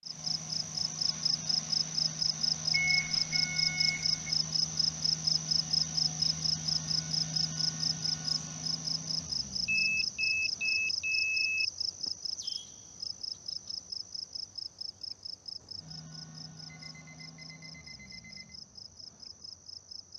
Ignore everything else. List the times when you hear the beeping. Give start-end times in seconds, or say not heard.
2.7-4.3, 9.7-11.7, 16.6-18.6.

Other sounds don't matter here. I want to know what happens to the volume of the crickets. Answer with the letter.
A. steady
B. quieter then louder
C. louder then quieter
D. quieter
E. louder
D.